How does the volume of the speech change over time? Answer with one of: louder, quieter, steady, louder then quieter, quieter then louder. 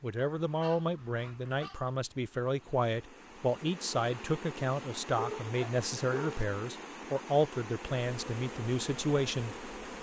steady.